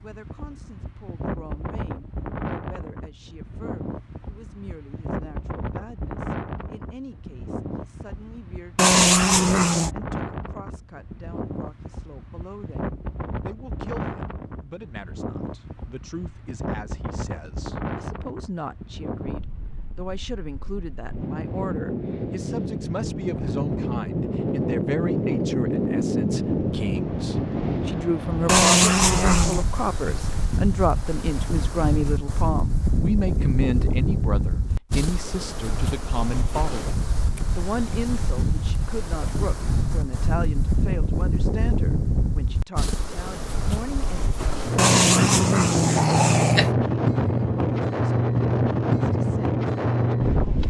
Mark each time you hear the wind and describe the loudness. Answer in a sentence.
The wind can be heard from 0.0 to 50.6 s, getting louder.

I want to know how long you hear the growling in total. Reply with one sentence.
You can hear the growling for 4 seconds altogether.